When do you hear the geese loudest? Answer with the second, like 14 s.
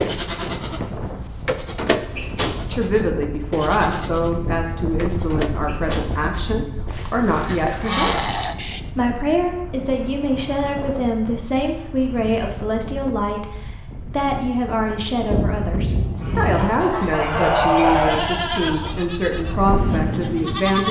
18 s.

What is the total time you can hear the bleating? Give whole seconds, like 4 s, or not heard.
12 s.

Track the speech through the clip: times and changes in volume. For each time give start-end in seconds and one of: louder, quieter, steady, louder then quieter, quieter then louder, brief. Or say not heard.
2.7-20.8 steady.